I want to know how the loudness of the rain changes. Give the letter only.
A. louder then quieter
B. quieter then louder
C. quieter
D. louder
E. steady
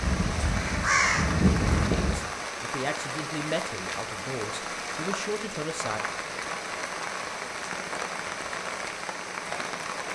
E.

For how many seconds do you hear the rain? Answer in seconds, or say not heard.
10 s.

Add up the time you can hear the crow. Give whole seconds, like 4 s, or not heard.
2 s.